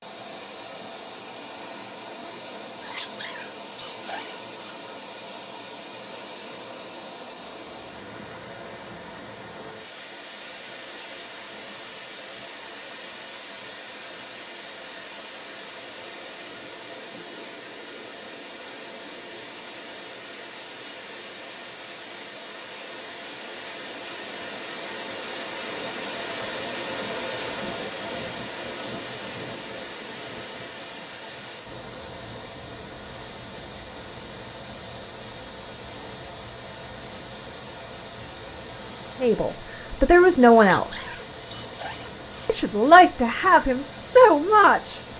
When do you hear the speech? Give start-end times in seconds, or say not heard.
39.2-41.1, 42.5-45.1.